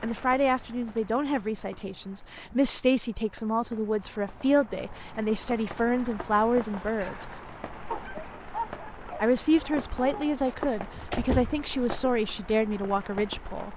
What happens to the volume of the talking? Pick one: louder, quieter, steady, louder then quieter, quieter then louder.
steady.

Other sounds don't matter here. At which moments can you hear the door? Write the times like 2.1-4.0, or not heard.
10.3-12.1.